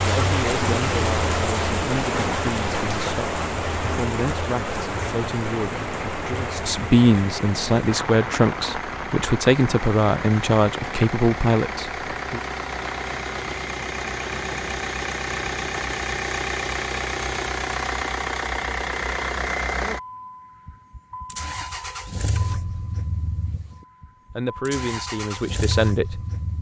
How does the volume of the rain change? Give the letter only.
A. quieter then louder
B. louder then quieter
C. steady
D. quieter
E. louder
D.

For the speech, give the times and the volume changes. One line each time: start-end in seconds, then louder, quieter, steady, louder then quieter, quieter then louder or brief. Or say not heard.
0.1-12.4 louder
24.3-26.5 brief.